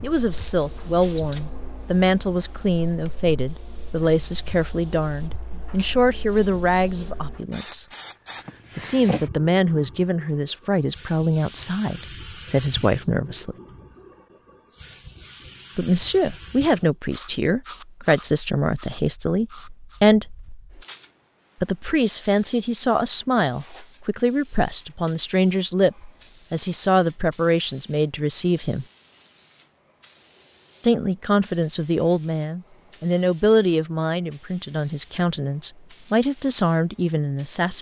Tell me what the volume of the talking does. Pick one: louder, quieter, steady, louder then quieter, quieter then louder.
steady.